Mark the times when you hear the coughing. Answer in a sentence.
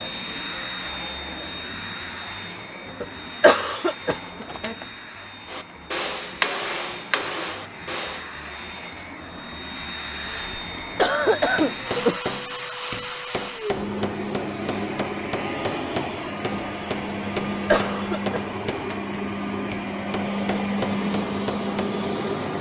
You can hear the coughing from 3.0 to 4.8 s, from 10.2 to 12.2 s and from 17.2 to 19.1 s.